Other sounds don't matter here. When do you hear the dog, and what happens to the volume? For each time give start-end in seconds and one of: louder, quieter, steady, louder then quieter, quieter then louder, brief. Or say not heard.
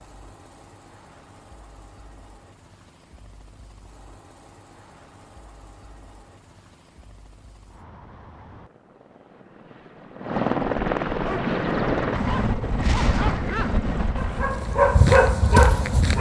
11.2-16.1 louder.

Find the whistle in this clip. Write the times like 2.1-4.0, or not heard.
not heard.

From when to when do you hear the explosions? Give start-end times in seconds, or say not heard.
12.8-13.6.